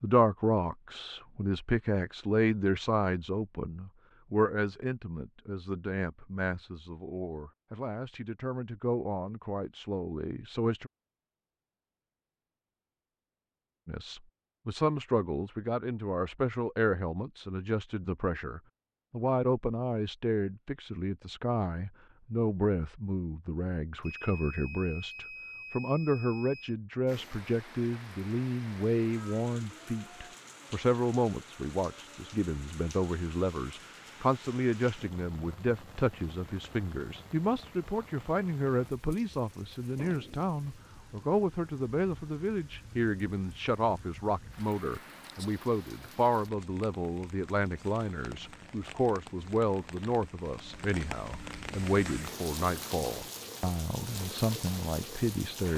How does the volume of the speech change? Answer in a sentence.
The volume of the speech stays about the same.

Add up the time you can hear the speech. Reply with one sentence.
You can hear the speech for 53 seconds altogether.